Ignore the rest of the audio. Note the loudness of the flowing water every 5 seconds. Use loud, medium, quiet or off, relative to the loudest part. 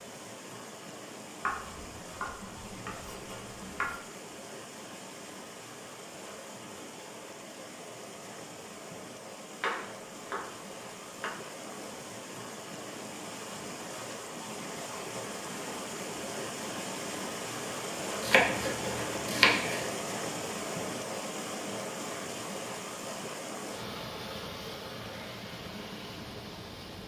medium, medium, medium, loud, loud, medium.